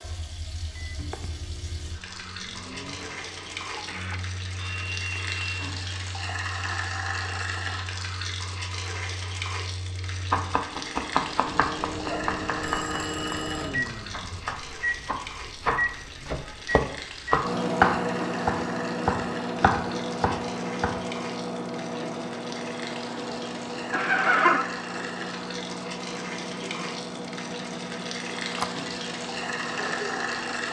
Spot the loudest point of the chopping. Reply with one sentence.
The volume of the chopping peaks at 18 seconds.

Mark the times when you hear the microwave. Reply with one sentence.
You can hear the microwave from 0.0 to 30.6 s.